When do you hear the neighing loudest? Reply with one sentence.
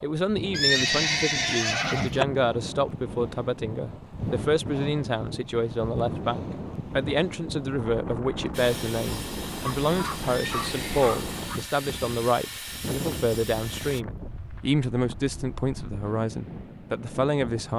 The loudest moment of the neighing is at 1 second.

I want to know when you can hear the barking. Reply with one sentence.
The barking can be heard from 9.6 to 11.6 s.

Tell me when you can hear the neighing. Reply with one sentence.
You can hear the neighing from 0.5 to 2.2 s and from 10.2 to 11.1 s.